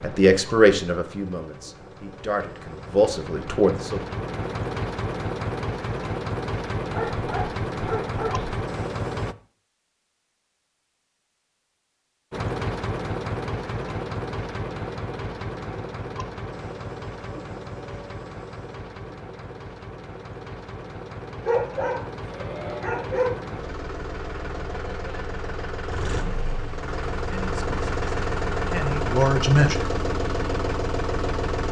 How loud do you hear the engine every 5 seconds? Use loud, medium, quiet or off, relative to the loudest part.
medium, loud, loud, medium, medium, loud, loud.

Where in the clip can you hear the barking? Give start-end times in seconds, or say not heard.
6.9-8.5, 21.4-23.4.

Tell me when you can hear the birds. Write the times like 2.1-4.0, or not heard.
not heard.